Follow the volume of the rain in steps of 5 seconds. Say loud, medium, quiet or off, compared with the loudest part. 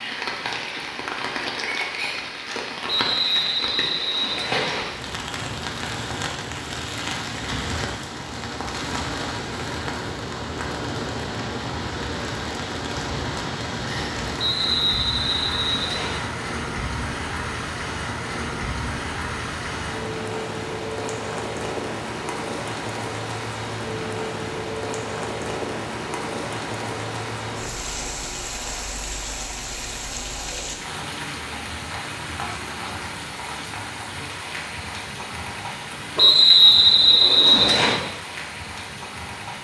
loud, loud, loud, loud, loud, loud, loud, medium.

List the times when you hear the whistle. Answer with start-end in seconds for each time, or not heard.
2.9-4.8, 14.3-16.2, 36.1-38.0.